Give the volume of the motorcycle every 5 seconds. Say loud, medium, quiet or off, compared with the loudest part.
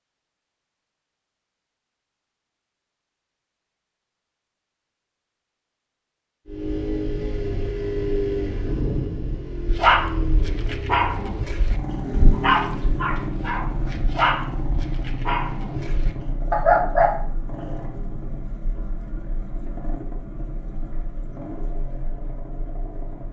off, loud, loud, medium, medium.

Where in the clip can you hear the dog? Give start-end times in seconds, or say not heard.
9.7-17.1.